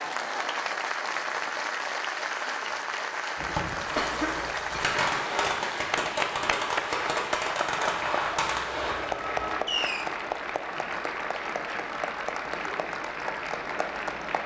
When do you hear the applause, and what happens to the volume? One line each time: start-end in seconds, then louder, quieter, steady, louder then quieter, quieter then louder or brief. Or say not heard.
0.0-14.4 steady.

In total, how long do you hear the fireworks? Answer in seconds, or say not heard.
7 s.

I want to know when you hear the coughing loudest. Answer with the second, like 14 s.
4 s.